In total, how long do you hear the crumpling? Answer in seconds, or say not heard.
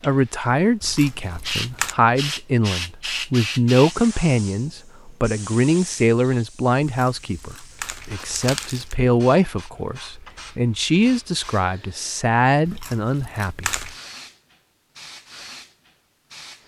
5 s.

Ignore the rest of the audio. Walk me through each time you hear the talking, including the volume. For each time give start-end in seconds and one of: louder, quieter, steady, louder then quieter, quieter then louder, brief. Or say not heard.
0.0-13.7 steady.